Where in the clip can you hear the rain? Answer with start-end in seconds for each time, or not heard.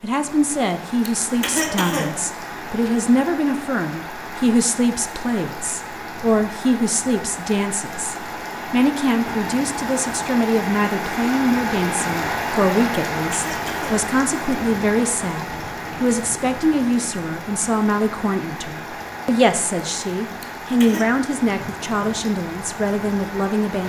0.0-23.8.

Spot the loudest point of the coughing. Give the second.
2 s.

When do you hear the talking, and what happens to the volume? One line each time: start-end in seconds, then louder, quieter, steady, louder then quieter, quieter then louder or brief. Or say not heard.
0.0-23.8 steady.